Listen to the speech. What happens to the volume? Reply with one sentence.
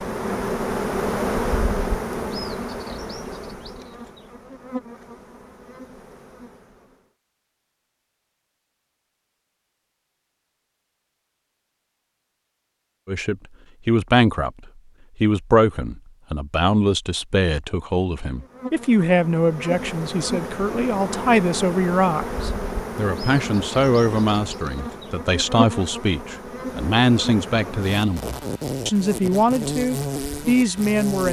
The volume of the speech stays about the same.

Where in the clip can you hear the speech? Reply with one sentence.
The speech can be heard from 13.1 to 31.2 s.